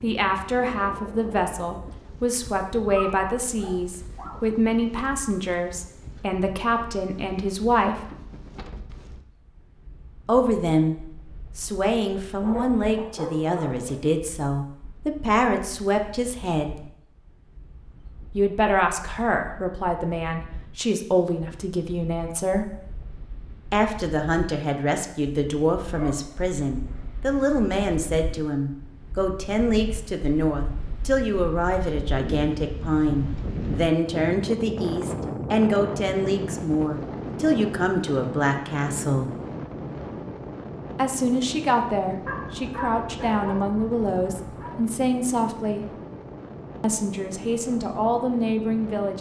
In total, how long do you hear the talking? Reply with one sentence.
The talking can be heard for 42 seconds in total.